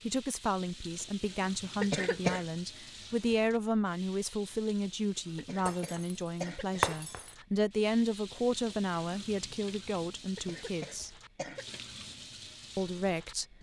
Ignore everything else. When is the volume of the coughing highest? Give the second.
2 s.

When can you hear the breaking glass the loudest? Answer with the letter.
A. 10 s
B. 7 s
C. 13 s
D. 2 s
B.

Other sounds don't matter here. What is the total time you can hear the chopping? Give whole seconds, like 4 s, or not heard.
not heard.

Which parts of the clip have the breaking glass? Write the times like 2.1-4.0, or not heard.
5.7-7.3.